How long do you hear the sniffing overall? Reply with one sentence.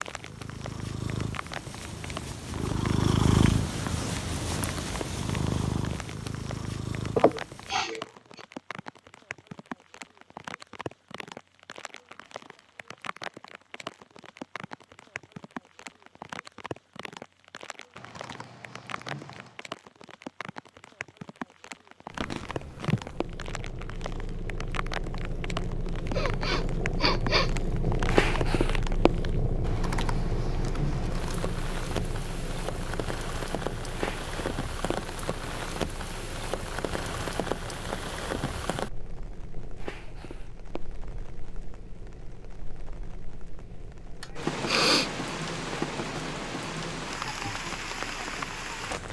You can hear the sniffing for 3 seconds altogether.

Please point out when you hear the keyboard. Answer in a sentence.
The keyboard can be heard from 17.9 to 19.6 s and from 29.6 to 31.4 s.